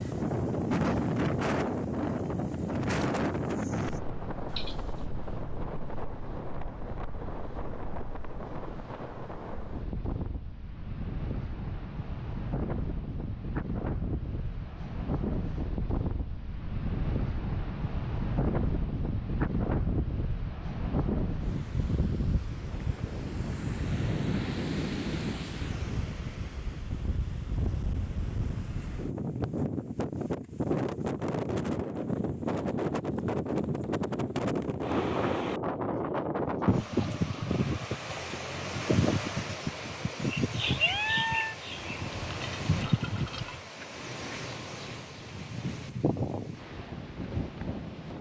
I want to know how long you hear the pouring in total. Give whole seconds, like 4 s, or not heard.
2 s.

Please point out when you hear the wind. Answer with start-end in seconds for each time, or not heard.
0.0-48.1.